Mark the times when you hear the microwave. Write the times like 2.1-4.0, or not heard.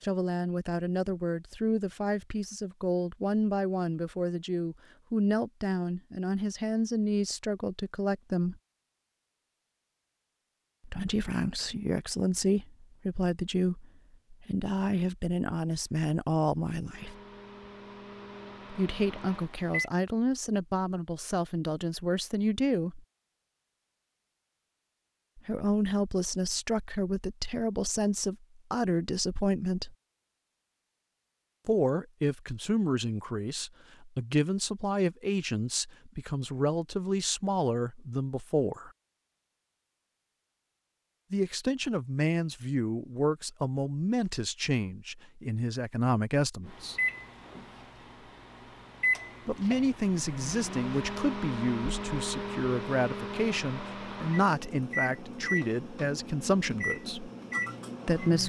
16.9-19.9, 46.6-58.4.